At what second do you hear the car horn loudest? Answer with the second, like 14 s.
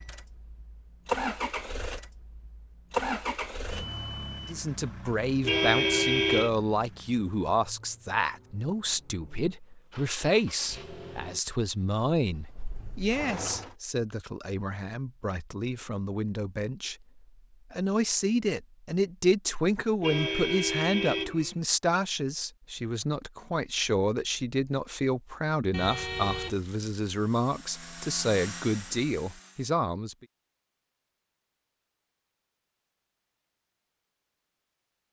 6 s.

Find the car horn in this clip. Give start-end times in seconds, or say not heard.
5.4-6.5, 20.0-21.6, 25.7-26.6.